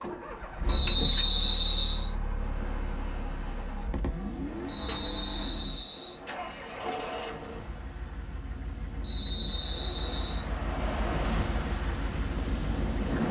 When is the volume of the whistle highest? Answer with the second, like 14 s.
1 s.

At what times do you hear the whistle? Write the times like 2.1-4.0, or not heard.
0.7-2.1, 4.7-6.2, 9.0-10.4.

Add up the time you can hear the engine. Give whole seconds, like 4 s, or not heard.
13 s.